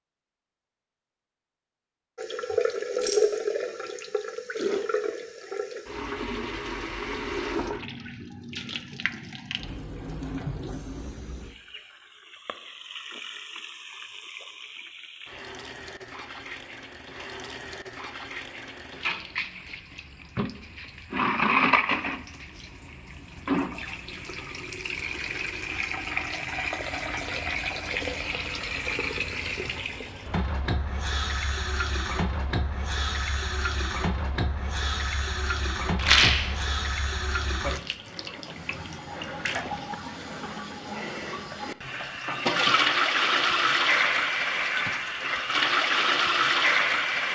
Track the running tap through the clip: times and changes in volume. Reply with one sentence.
You can hear the running tap from 2.1 to 47.2 s, getting quieter then louder.